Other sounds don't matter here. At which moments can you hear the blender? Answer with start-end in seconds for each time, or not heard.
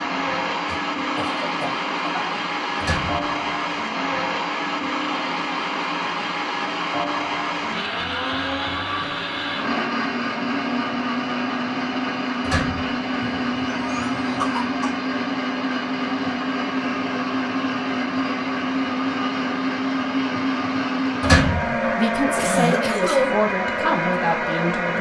0.0-24.9.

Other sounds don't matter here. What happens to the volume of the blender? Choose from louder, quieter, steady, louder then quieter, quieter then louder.
steady.